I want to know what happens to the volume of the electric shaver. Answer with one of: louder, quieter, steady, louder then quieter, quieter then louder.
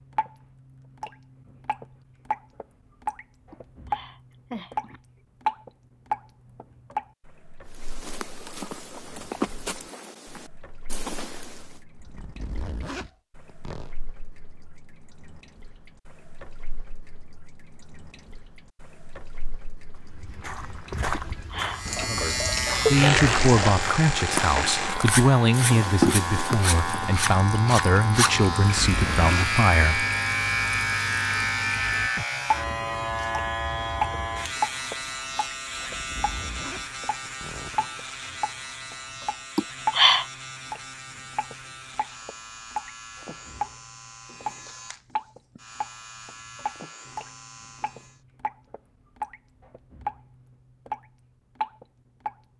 quieter.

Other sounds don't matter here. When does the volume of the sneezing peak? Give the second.
40 s.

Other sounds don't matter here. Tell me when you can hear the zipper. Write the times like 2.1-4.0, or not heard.
12.0-13.9, 28.6-29.6, 36.0-37.9.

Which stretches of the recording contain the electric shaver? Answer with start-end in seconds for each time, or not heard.
21.7-48.2.